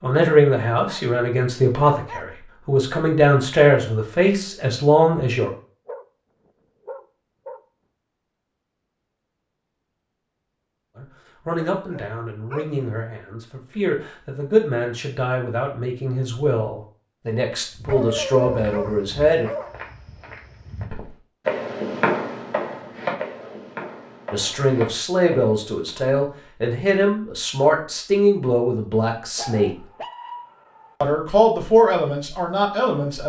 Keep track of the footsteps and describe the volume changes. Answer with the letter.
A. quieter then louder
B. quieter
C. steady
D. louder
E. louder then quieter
E.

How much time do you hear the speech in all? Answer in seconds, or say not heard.
22 s.